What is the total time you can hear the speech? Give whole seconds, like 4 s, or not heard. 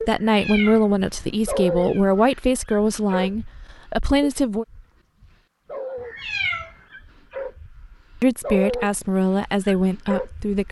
7 s.